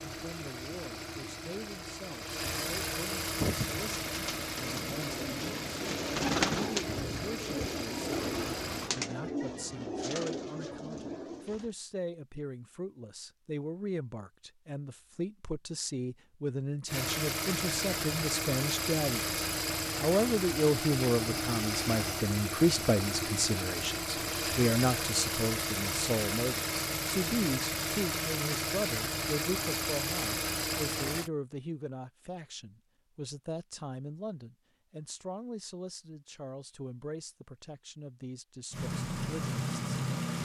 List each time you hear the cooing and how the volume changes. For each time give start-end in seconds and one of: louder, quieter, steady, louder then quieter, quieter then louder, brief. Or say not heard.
3.2-11.7 louder then quieter.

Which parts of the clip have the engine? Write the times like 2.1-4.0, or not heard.
0.0-8.9, 16.9-31.3, 38.7-40.4.